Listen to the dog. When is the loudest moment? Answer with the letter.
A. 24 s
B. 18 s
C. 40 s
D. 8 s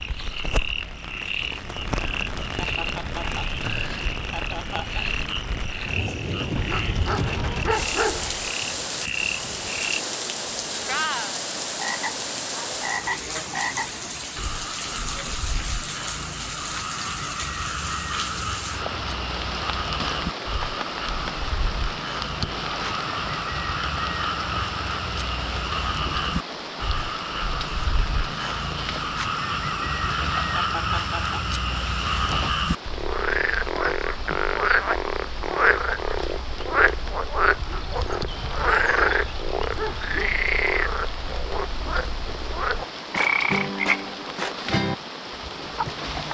D.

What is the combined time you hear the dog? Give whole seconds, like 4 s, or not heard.
5 s.